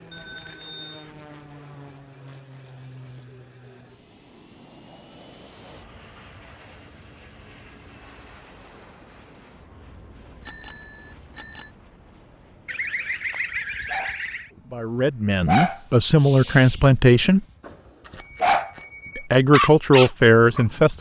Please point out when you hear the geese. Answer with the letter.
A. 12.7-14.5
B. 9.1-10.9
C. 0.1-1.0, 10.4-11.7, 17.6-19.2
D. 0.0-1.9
A.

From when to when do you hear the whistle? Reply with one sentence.
You can't hear the whistle here.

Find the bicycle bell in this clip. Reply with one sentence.
The bicycle bell can be heard from 0.1 to 1.0 s, from 10.4 to 11.7 s and from 17.6 to 19.2 s.